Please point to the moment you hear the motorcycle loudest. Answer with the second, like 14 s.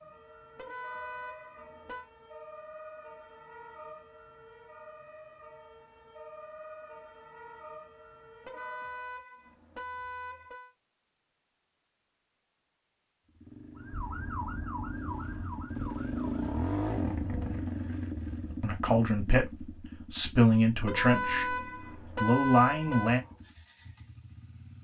17 s.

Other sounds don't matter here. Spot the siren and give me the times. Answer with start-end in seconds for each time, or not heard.
0.0-9.2, 13.8-16.4.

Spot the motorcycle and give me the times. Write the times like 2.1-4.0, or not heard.
13.2-24.7.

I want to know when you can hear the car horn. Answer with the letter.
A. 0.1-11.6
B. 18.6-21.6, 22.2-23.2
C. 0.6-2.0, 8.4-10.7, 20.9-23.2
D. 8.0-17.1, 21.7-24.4
C.